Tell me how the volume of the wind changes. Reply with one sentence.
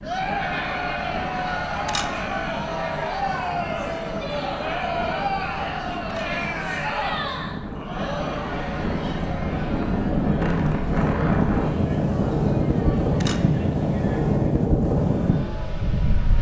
The loudness of the wind goes up.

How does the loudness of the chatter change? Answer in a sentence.
The volume of the chatter goes down.